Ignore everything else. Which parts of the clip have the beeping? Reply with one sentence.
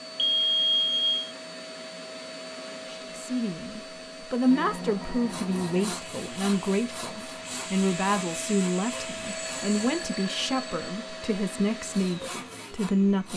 The beeping can be heard from 0.1 to 1.3 s, from 4.5 to 6.0 s and from 9.2 to 10.7 s.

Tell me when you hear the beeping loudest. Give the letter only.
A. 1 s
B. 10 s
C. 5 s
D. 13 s
A.